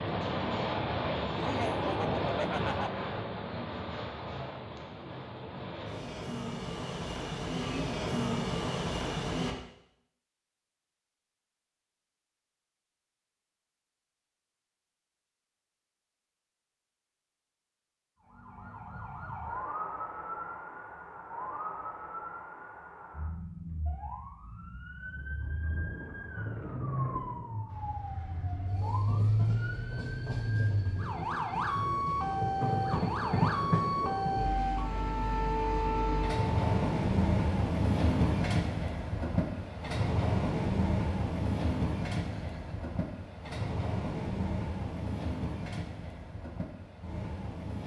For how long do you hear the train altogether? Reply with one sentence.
You can hear the train for 30 seconds altogether.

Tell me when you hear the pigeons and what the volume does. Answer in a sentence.
The pigeons can't be heard in this clip.